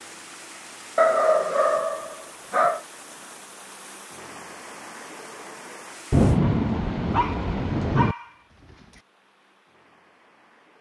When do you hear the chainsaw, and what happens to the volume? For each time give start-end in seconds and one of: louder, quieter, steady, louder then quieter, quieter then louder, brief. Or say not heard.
not heard.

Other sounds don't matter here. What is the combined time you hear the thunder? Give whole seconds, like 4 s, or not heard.
2 s.